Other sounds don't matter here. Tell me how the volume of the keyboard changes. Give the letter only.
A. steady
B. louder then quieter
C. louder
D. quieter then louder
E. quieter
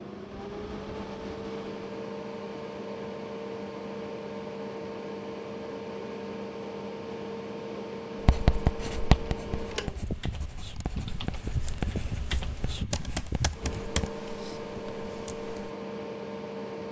B.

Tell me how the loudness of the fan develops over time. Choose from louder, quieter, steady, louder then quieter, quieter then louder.
steady.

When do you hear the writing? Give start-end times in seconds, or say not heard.
8.2-14.1.